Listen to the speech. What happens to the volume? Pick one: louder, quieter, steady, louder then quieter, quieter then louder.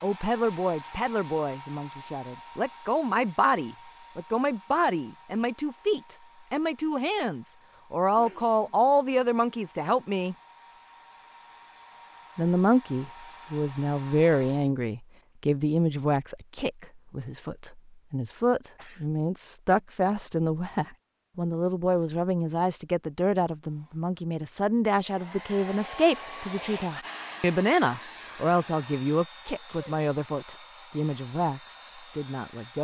steady.